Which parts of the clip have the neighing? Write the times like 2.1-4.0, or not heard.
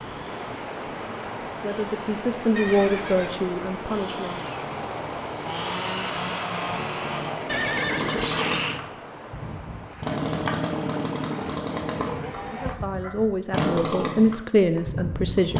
2.5-3.4, 7.5-8.8, 11.5-12.9.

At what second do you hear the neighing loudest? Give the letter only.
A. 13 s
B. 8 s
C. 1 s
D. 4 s
B.